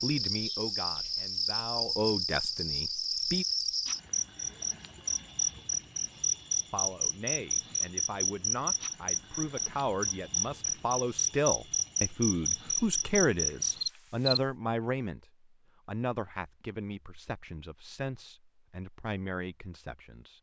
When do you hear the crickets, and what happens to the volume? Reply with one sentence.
You can hear the crickets from 0.0 to 14.4 s, at a steady volume.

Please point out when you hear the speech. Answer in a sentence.
You can hear the speech from 0.0 to 3.5 s, from 6.7 to 15.2 s and from 15.8 to 20.3 s.